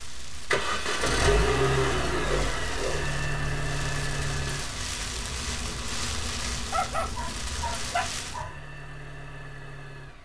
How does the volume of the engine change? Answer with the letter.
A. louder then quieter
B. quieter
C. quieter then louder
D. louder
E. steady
B.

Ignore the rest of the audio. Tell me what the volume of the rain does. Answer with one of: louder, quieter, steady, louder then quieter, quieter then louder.
louder.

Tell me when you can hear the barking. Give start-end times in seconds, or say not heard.
1.1-3.0, 6.7-8.6.